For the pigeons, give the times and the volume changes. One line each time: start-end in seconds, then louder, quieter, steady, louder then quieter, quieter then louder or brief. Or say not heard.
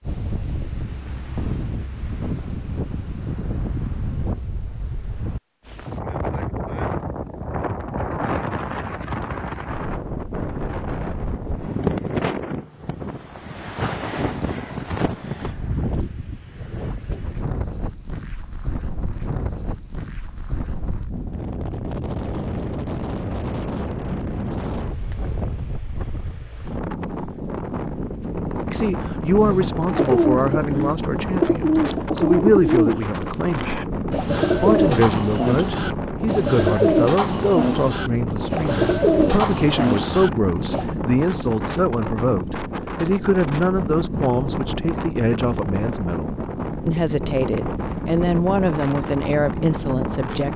29.4-40.9 steady.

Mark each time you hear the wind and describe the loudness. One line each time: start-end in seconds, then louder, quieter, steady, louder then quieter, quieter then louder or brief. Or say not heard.
0.0-50.5 steady.